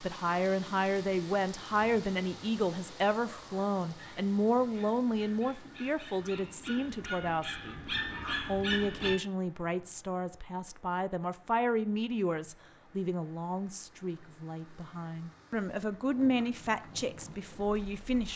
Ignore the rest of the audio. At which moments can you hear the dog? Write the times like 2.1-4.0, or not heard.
3.2-9.2.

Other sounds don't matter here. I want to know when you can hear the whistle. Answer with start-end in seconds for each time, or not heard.
not heard.